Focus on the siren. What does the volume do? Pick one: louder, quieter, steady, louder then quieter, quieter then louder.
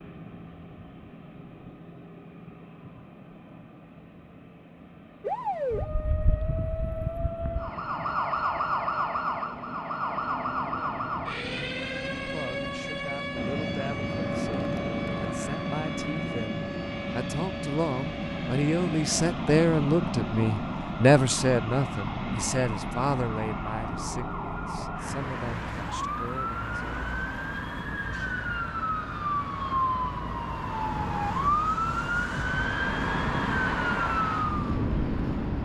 quieter then louder.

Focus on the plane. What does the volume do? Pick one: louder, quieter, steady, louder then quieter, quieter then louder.
louder then quieter.